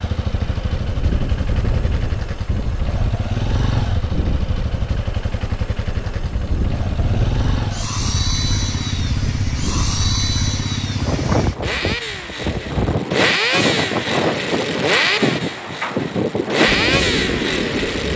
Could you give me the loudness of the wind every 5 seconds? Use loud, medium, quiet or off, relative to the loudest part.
medium, medium, loud, loud.